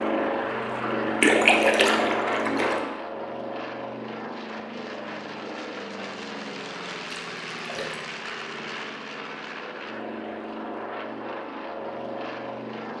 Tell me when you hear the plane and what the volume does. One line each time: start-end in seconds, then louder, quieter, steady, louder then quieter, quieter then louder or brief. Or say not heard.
0.0-12.9 quieter.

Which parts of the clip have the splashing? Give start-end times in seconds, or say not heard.
1.2-2.8, 7.1-8.1.